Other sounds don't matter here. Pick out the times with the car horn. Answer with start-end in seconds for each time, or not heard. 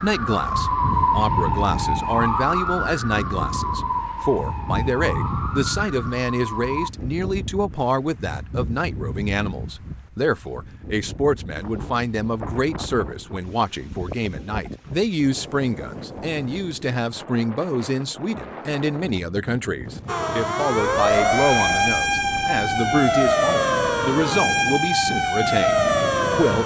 not heard.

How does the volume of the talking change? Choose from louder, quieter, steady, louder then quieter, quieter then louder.
steady.